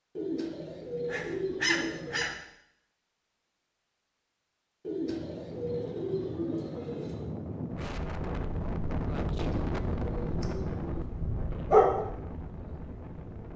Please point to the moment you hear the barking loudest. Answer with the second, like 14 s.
12 s.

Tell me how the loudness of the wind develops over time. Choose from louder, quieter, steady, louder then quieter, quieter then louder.
louder then quieter.